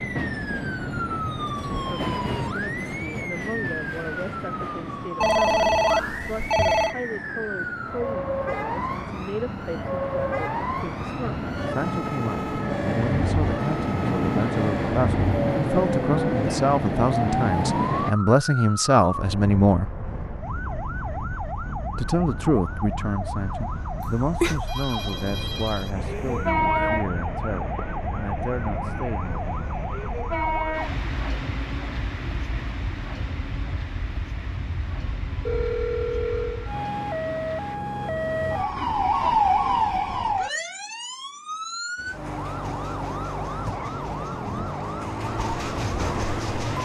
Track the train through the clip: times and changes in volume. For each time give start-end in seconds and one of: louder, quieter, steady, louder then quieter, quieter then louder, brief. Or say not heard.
0.0-18.1 quieter then louder
25.9-37.8 quieter
42.0-46.8 louder.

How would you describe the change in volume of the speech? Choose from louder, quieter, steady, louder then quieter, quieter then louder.
louder then quieter.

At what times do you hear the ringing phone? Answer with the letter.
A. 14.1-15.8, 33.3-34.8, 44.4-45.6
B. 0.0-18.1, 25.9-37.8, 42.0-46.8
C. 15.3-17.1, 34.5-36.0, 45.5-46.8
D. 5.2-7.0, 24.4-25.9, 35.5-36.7
D.